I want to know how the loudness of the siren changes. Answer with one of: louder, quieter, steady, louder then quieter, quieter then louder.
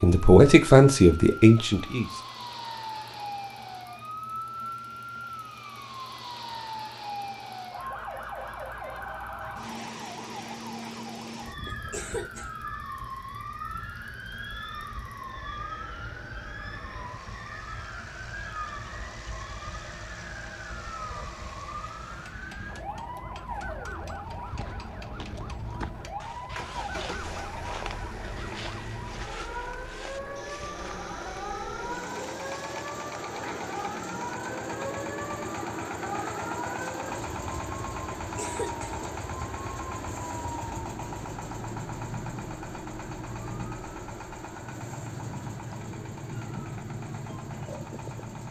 steady.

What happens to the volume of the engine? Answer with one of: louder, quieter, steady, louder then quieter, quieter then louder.
louder.